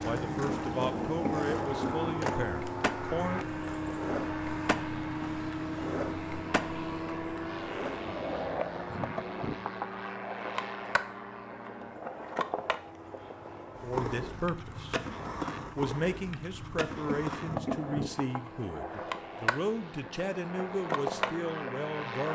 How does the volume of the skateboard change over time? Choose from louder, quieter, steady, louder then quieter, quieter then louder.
steady.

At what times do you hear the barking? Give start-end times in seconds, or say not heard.
not heard.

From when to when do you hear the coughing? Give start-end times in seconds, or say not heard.
1.2-2.1, 17.1-18.0.